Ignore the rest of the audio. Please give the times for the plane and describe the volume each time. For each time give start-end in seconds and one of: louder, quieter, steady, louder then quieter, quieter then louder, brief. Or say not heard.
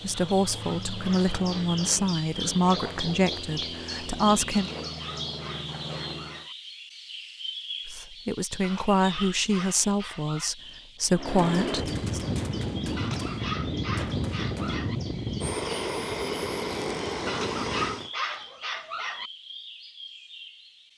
0.0-6.5 steady
11.1-18.1 steady.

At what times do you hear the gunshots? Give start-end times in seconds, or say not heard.
11.4-14.8.